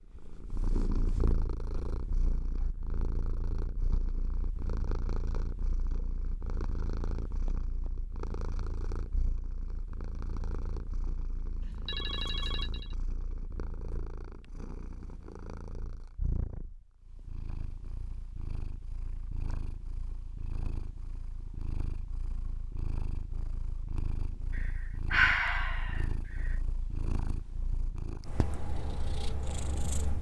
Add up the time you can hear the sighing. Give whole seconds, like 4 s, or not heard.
2 s.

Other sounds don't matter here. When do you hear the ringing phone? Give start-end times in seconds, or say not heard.
11.6-12.9.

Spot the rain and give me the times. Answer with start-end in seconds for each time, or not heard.
not heard.